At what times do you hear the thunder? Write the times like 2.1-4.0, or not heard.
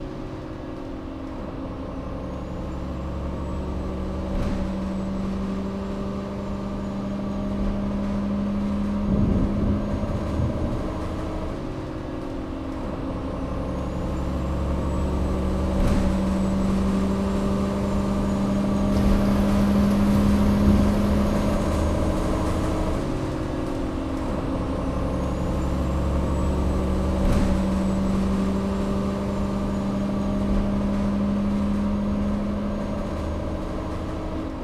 9.1-10.9, 18.9-21.6.